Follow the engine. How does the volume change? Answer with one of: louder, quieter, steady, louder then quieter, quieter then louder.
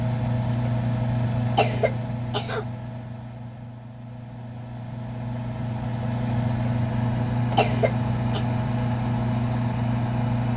quieter then louder.